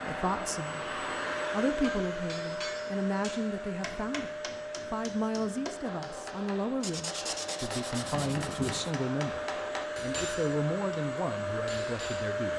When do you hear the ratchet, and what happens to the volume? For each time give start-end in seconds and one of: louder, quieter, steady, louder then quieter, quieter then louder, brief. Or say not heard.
not heard.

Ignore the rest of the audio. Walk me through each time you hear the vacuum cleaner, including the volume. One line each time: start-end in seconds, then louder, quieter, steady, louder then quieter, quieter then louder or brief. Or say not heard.
0.0-12.5 quieter then louder.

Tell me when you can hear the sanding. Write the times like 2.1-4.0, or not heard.
6.8-8.9.